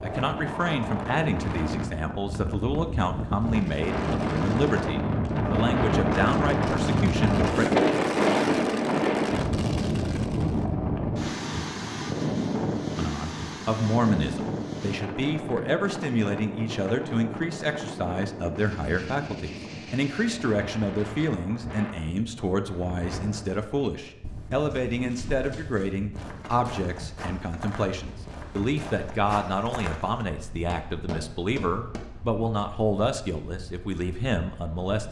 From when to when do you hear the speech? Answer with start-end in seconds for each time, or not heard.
0.0-7.7, 12.9-35.0.